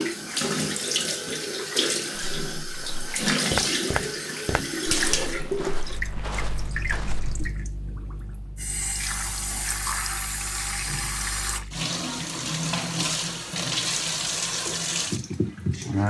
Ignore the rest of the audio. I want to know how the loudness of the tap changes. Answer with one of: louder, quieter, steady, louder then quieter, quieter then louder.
quieter then louder.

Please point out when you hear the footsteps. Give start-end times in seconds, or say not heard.
2.1-7.5.